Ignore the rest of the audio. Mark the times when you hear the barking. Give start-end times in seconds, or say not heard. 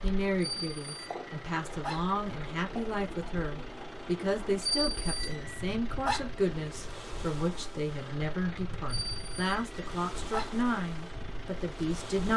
0.4-2.0, 4.6-6.2, 8.8-10.6.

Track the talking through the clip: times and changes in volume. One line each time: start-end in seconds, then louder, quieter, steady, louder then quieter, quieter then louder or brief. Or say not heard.
0.0-12.3 steady.